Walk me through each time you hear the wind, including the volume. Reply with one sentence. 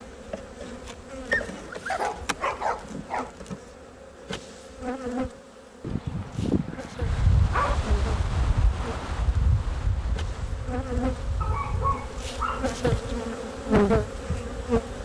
You can hear the wind from 7.0 to 14.8 s, getting quieter.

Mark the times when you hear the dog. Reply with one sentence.
The dog can be heard from 1.3 to 3.3 s, from 5.8 to 7.8 s and from 11.4 to 12.7 s.